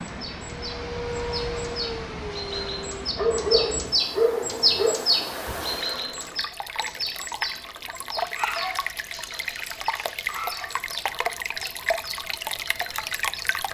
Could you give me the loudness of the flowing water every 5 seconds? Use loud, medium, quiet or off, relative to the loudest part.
medium, loud, loud.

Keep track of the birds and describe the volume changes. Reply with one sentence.
The volume of the birds goes up, then down.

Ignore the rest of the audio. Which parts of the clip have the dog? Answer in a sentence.
You can hear the dog from 3.1 to 5.0 s and from 8.3 to 10.7 s.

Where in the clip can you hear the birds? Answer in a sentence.
You can hear the birds from 0.0 to 13.4 s.